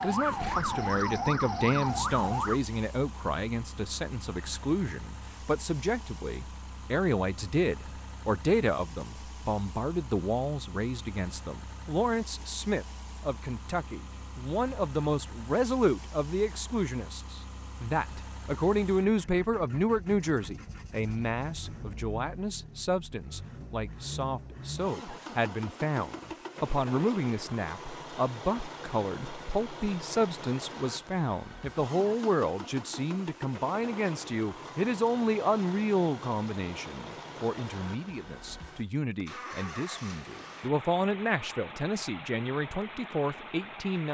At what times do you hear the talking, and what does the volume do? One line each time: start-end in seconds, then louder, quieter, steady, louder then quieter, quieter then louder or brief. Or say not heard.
0.0-44.0 steady.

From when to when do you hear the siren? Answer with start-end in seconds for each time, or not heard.
0.0-2.6.